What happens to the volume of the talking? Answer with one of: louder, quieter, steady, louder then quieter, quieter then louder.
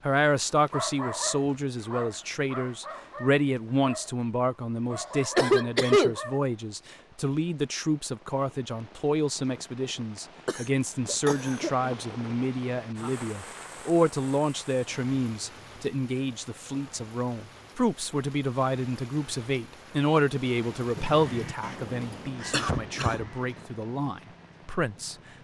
steady.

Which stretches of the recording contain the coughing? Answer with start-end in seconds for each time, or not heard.
5.3-6.2, 10.4-11.9, 22.5-23.3.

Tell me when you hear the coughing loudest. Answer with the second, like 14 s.
6 s.